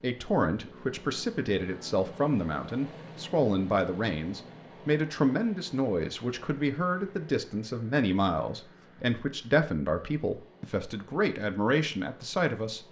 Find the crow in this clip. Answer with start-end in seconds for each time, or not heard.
not heard.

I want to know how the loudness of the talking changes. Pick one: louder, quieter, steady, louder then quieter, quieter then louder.
steady.